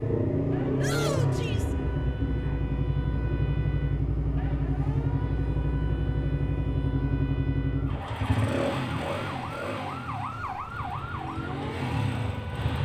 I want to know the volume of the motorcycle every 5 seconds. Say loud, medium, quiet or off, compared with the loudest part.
loud, loud, medium.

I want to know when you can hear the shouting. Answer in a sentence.
The shouting can be heard from 0.8 to 1.8 s.